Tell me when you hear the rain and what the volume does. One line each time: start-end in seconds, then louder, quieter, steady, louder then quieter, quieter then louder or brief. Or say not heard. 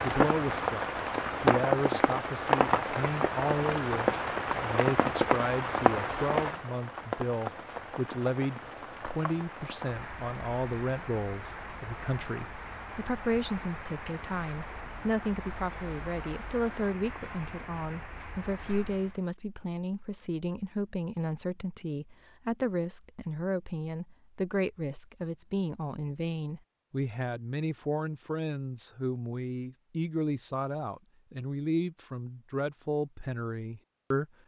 0.0-19.2 quieter.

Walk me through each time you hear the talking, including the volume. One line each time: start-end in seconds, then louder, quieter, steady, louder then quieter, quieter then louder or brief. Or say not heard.
0.0-34.2 steady.